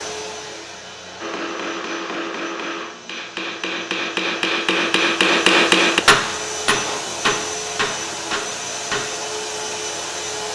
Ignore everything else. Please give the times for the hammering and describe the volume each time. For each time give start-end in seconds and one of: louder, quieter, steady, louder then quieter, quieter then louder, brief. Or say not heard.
1.2-9.2 louder then quieter.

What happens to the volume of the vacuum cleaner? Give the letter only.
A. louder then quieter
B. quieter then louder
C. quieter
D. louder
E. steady
D.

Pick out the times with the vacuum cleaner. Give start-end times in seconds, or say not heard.
0.0-10.5.